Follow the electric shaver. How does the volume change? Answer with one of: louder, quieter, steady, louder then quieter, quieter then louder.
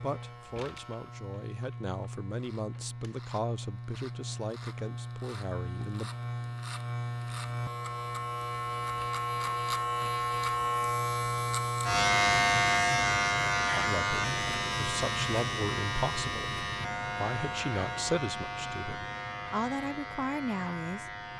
louder then quieter.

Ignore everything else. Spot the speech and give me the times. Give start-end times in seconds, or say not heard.
0.0-6.1, 13.8-21.1.